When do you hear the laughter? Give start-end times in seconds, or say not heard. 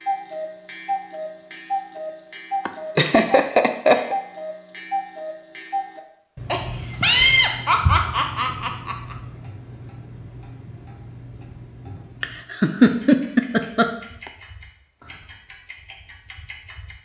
2.6-4.2, 6.5-9.2, 12.2-13.9.